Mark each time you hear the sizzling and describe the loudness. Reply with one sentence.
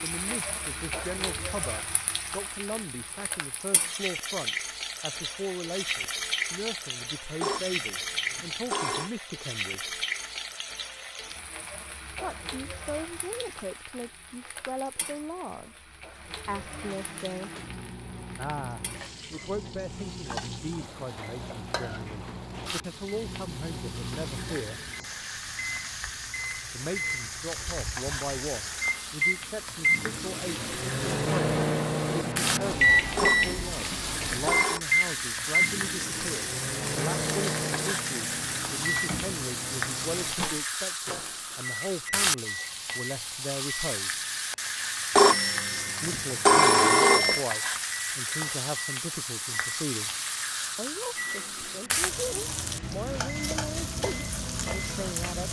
The sizzling can be heard from 0.0 to 55.4 s, getting quieter then louder.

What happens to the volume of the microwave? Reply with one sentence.
The volume of the microwave goes up, then down.